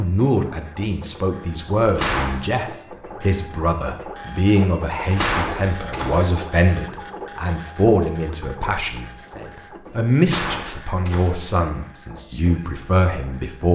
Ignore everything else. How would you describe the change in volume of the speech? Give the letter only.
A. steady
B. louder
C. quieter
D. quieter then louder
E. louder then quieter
A.